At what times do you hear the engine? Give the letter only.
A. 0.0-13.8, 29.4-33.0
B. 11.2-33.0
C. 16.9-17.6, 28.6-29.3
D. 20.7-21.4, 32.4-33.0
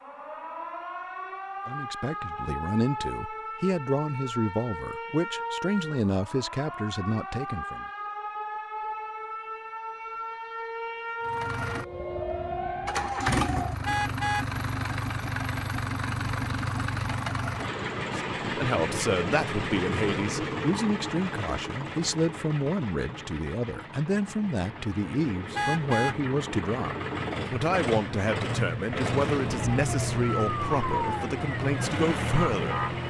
B.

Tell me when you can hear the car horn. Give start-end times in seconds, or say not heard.
13.8-14.5, 25.6-26.2.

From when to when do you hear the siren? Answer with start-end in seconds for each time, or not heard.
0.0-13.8, 29.4-33.0.